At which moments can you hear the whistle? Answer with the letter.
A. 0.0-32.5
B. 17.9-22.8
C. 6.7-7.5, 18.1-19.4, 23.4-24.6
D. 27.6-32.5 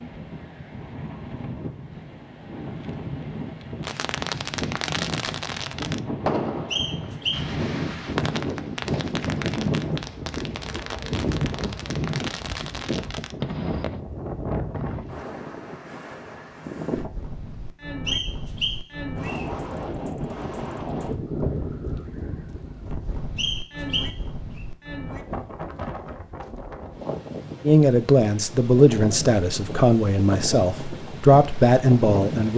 C.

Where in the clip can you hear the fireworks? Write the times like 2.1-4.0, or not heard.
3.8-14.0.